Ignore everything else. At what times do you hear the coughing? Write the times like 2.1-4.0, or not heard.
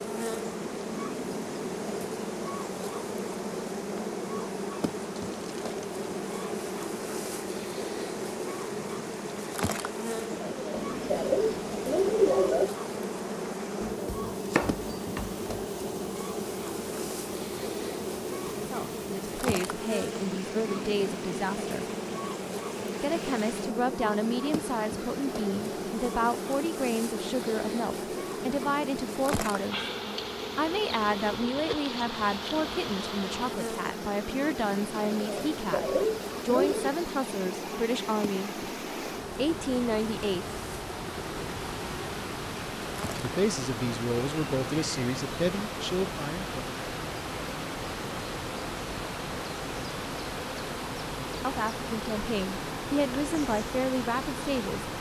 10.3-12.7, 35.1-36.9.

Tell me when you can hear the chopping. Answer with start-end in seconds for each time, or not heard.
13.8-15.7.